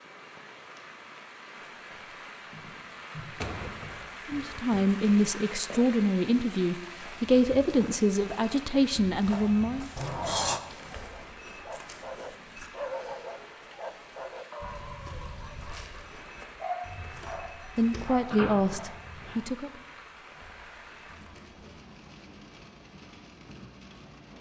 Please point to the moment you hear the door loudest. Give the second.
10 s.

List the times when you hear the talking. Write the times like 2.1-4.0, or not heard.
4.2-9.9, 17.8-19.7.